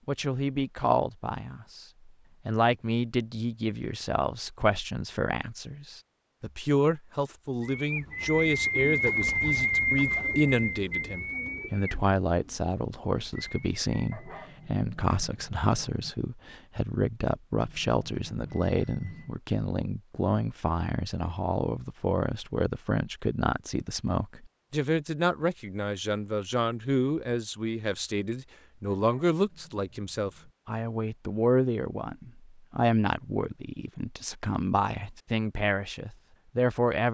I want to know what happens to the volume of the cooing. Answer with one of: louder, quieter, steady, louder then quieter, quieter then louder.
quieter.